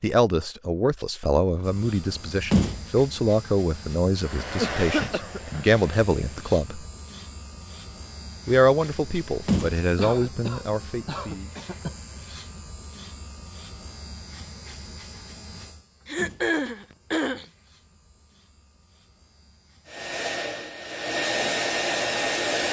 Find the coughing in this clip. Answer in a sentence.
You can hear the coughing from 4.5 to 5.6 s, from 9.9 to 11.9 s and from 16.1 to 17.4 s.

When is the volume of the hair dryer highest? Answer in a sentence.
The loudest moment of the hair dryer is at 22 seconds.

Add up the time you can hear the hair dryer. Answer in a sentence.
You can hear the hair dryer for 5 seconds altogether.